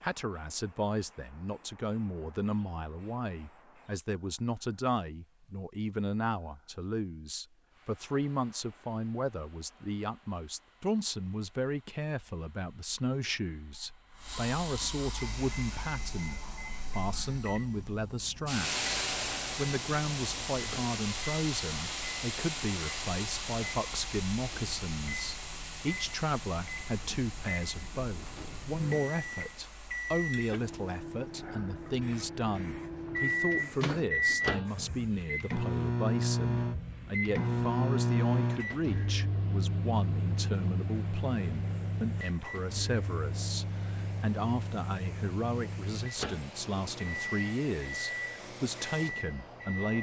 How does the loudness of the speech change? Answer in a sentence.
The volume of the speech stays about the same.